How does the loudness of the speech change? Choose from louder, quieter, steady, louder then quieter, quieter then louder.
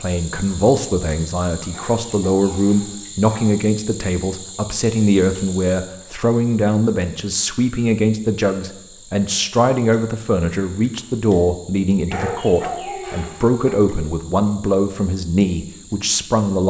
steady.